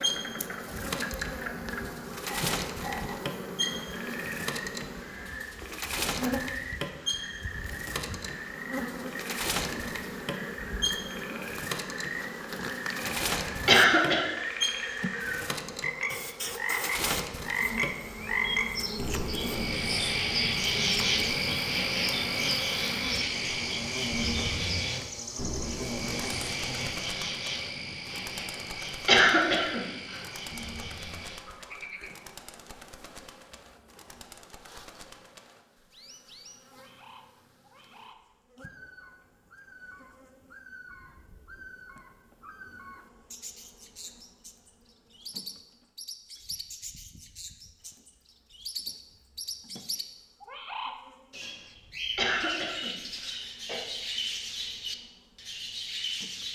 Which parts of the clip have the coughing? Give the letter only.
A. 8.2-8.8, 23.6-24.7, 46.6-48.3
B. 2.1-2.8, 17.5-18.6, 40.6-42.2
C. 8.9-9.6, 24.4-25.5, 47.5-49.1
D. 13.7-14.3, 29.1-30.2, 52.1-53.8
D.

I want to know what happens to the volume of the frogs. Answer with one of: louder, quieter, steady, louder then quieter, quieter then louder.
louder then quieter.